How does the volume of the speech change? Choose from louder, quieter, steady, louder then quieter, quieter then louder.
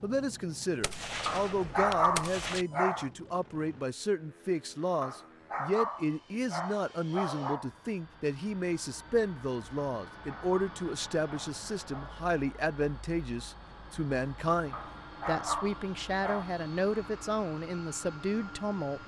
steady.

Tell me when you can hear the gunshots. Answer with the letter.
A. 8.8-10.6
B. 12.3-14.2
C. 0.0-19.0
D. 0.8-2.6
D.